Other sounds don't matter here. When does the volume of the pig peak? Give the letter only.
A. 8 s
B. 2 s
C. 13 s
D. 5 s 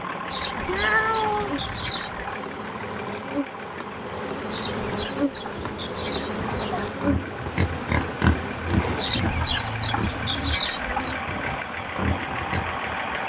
A.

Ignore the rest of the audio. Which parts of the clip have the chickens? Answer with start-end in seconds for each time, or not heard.
0.3-2.4, 4.5-6.9, 8.9-11.2.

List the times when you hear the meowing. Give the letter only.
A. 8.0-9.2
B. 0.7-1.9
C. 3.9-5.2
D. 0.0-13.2
B.